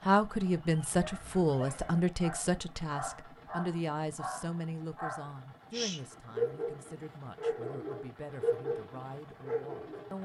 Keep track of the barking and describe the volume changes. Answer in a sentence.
The volume of the barking goes up.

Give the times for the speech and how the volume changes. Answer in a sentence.
You can hear the speech from 0.0 to 10.2 s, getting quieter.